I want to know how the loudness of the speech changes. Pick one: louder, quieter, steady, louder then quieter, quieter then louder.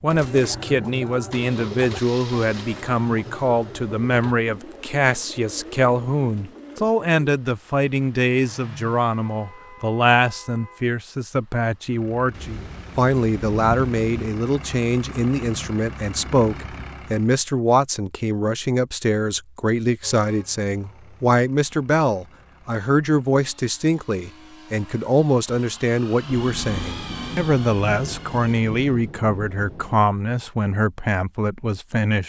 steady.